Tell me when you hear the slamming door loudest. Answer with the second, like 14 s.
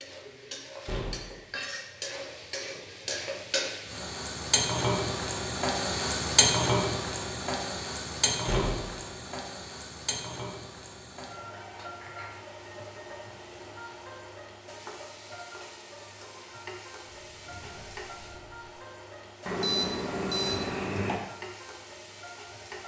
9 s.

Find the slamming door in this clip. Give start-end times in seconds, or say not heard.
0.8-1.4, 8.4-9.0, 17.1-18.7.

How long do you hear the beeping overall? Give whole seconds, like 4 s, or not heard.
2 s.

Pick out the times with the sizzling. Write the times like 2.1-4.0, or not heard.
0.0-22.8.